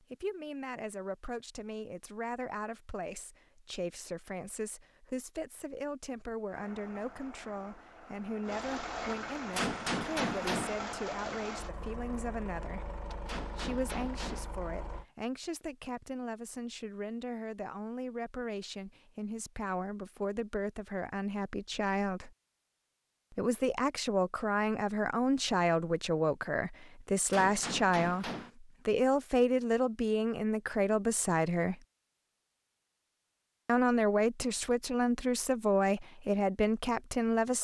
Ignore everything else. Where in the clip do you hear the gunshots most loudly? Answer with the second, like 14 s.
10 s.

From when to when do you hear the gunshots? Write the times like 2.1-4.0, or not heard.
9.5-10.8, 13.2-14.5, 27.3-28.5.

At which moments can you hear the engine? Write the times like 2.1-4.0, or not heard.
6.5-15.1.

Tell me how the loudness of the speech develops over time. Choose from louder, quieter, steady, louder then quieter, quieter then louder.
louder.